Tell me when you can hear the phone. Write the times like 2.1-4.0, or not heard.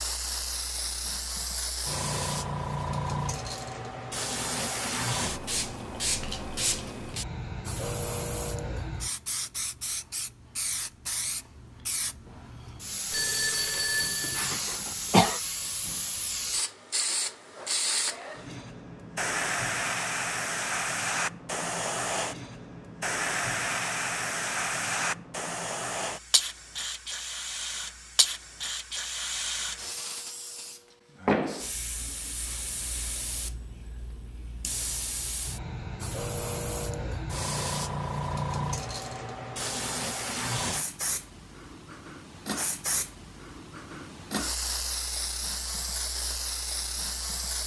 13.1-14.6.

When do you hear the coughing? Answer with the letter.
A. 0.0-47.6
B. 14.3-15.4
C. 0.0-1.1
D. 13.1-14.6
B.